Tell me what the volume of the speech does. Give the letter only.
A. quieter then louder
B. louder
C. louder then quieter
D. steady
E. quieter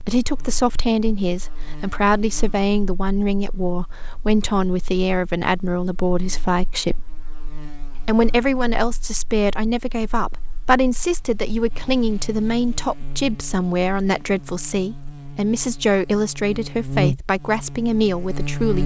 D.